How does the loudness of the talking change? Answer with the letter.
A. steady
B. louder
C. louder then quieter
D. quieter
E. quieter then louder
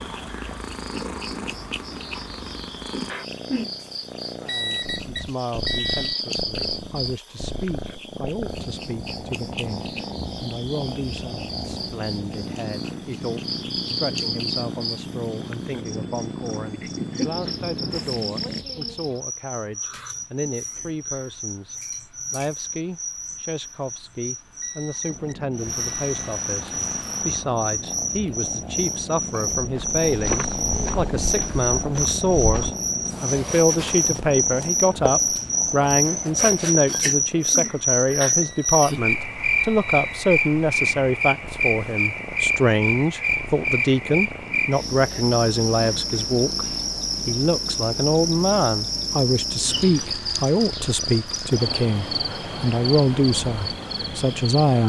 B.